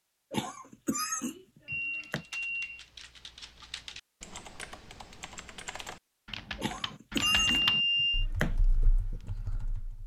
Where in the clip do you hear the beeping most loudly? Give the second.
8 s.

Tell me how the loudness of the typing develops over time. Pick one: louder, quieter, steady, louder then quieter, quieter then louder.
louder then quieter.